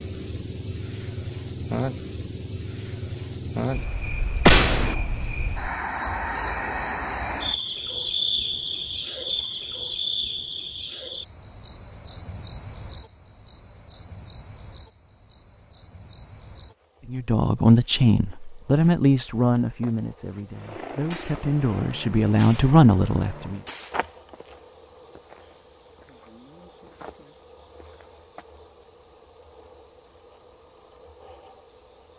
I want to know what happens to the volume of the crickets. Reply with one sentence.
The loudness of the crickets goes down, then up.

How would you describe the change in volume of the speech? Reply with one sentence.
The loudness of the speech goes down, then up.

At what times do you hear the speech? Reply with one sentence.
You can hear the speech from 17.1 to 23.6 s.